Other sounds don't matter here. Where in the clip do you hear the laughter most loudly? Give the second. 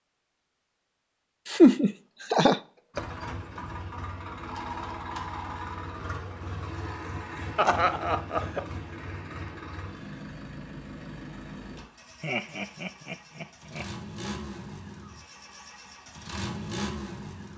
2 s.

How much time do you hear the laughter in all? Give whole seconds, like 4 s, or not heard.
4 s.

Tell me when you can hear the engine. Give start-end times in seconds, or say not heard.
2.9-17.5.